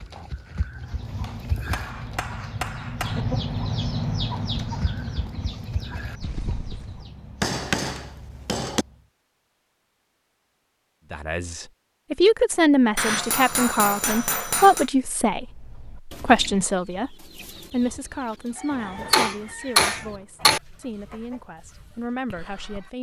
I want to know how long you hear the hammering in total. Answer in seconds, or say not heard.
7 s.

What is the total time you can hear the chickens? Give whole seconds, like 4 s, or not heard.
16 s.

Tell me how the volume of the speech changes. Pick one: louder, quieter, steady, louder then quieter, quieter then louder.
quieter.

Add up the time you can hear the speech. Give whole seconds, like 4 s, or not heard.
12 s.